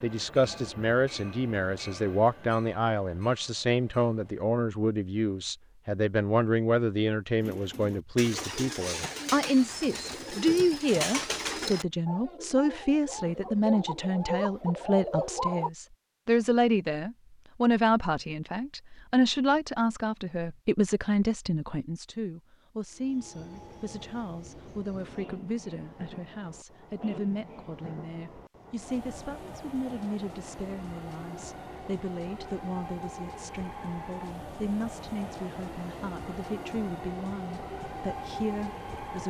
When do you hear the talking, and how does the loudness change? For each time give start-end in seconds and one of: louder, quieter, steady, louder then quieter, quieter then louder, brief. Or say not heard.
0.0-39.2 quieter.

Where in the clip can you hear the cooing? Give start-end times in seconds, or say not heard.
7.4-15.7.